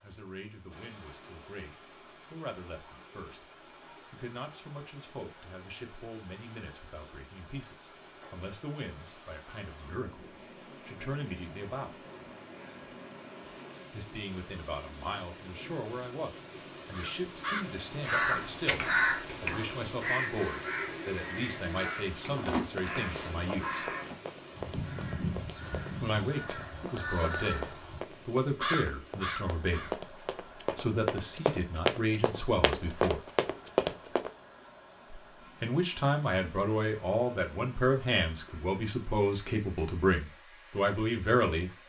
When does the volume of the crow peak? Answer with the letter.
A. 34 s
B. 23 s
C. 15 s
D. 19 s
D.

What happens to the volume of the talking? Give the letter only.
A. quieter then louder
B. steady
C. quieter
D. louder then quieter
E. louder
E.